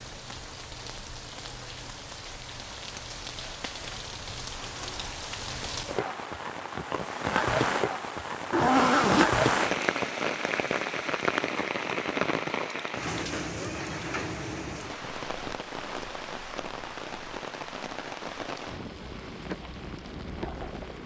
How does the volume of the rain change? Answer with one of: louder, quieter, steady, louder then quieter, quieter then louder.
louder then quieter.